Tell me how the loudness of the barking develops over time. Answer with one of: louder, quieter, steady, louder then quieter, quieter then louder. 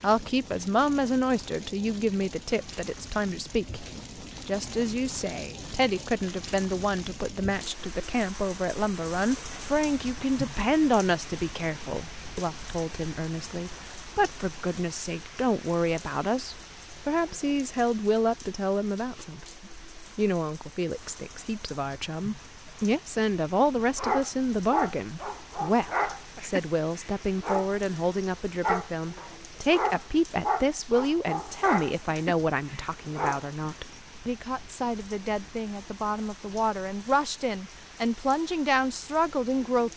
quieter.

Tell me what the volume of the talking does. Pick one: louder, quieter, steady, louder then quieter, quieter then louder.
steady.